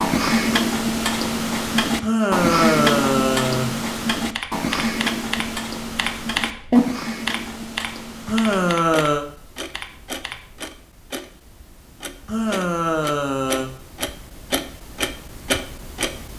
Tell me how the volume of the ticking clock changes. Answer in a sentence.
The volume of the ticking clock goes down, then up.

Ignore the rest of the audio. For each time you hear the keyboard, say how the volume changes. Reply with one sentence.
You can hear the keyboard from 4.2 to 10.6 s, getting louder then quieter.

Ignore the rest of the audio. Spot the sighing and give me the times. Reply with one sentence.
You can hear the sighing from 2.0 to 3.7 s, from 8.2 to 9.2 s and from 12.2 to 13.7 s.